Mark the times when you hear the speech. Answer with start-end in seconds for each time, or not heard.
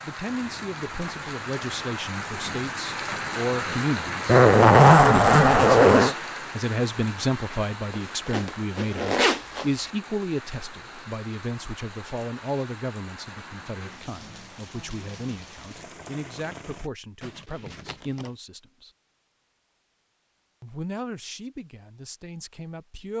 0.0-18.9, 20.6-23.1.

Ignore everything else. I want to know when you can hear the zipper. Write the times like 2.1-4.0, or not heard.
4.2-6.2, 7.9-9.9, 17.2-18.3.